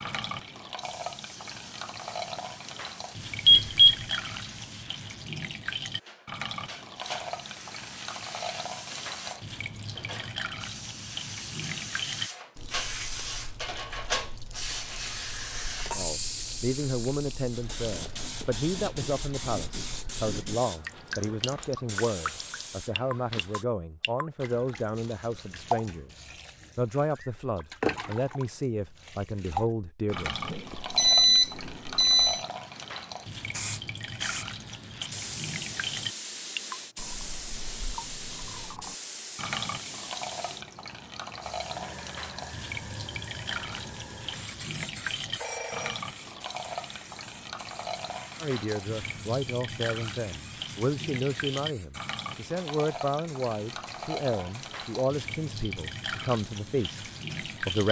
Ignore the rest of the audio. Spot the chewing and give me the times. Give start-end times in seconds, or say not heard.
not heard.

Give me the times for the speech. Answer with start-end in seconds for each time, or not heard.
15.9-30.4, 48.4-57.8.